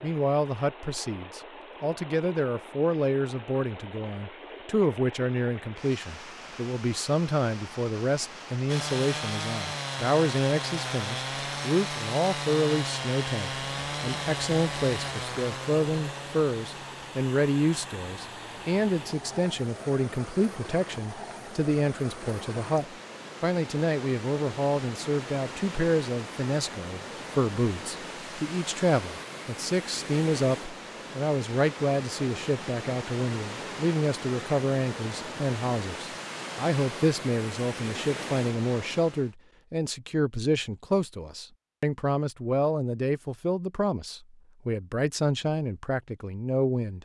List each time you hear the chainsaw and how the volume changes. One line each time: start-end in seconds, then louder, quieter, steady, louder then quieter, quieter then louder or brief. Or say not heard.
8.7-19.4 quieter.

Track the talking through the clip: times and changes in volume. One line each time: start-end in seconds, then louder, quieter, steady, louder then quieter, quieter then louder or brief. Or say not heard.
0.0-46.9 steady.